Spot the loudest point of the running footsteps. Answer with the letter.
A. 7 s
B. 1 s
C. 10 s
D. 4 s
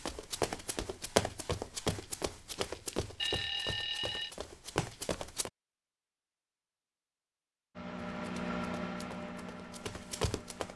B.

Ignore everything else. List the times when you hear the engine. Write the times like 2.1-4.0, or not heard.
7.8-10.7.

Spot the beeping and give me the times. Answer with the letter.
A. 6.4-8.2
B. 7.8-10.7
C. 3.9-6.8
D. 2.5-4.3
D.